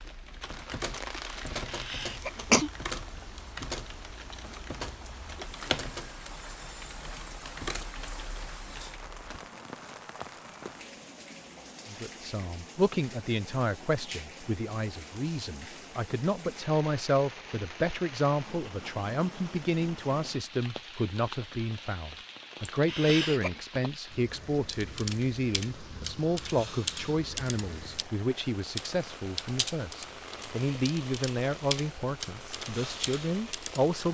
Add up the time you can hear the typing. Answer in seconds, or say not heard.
19 s.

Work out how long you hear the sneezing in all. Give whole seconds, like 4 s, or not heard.
2 s.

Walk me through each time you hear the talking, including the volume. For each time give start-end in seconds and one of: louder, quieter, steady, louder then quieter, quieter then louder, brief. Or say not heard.
11.8-34.0 steady.